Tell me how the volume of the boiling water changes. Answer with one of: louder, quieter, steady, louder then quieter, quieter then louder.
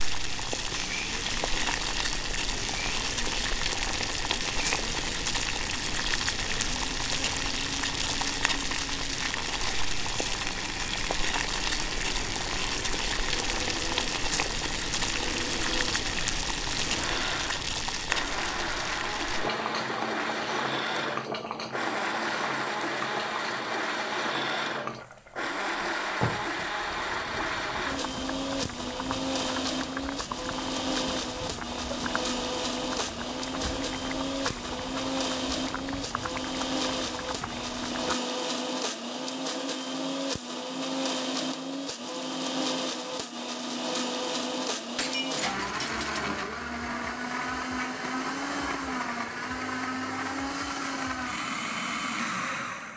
quieter.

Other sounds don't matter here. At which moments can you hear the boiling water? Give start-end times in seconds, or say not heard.
0.0-38.1.